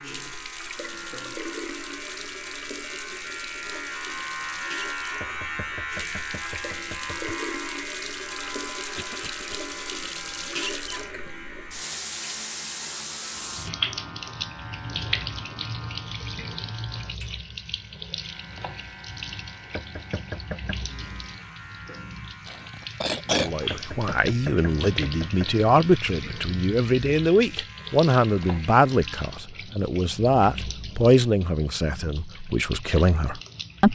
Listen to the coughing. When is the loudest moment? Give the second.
23 s.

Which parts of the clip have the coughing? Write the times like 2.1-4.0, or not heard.
8.9-9.6, 22.4-23.6.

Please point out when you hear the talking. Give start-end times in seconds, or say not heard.
23.3-33.9.